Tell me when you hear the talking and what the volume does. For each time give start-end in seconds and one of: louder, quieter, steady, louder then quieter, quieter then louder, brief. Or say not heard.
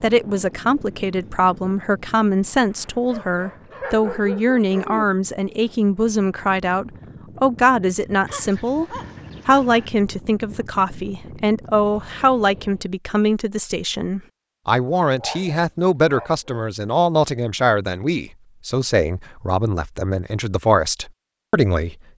0.0-21.9 steady.